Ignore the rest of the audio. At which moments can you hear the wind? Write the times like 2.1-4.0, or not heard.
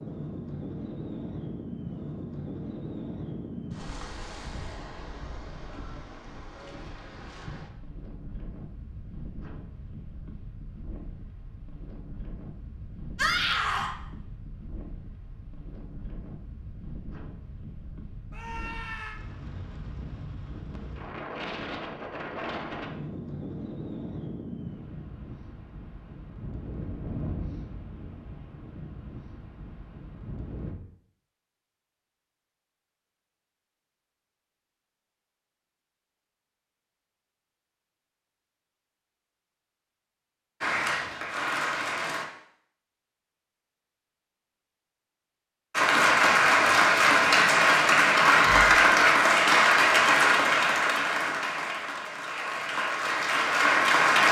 0.0-30.8.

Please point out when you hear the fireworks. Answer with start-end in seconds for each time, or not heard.
not heard.